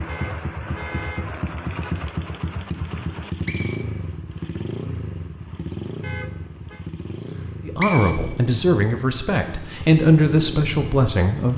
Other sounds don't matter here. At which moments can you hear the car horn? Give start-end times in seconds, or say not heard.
0.1-1.3, 6.0-6.8.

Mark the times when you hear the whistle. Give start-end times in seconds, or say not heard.
3.0-4.1, 7.3-8.4.